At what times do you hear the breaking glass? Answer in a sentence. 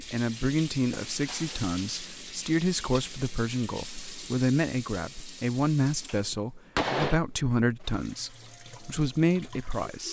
The breaking glass can be heard from 0.9 to 2.0 s and from 6.3 to 7.2 s.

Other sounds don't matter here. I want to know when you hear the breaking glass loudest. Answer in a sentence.
The volume of the breaking glass peaks at 7 seconds.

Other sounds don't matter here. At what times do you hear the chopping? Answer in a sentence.
The chopping can't be heard in this clip.